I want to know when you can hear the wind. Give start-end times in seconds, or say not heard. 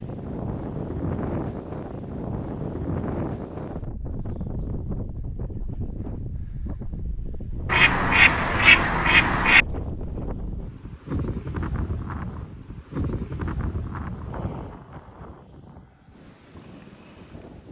0.0-17.6.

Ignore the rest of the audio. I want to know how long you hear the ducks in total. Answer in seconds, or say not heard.
2 s.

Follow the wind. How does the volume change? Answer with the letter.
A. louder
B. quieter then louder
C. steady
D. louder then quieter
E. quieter
E.